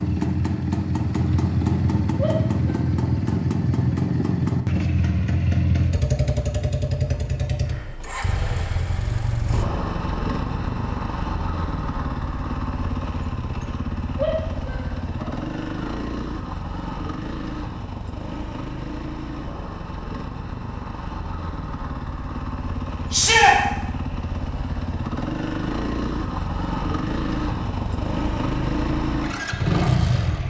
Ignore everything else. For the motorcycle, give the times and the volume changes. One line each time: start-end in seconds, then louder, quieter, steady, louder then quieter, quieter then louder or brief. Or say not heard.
0.0-30.4 quieter then louder.